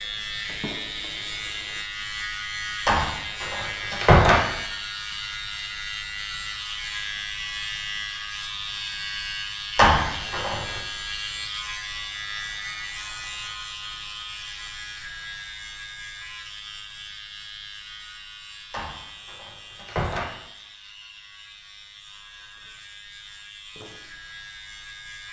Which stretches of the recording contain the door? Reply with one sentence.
The door can be heard from 2.9 to 4.5 s, from 9.8 to 10.8 s and from 18.7 to 20.3 s.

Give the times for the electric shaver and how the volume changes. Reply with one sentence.
The electric shaver can be heard from 0.0 to 25.2 s, getting quieter.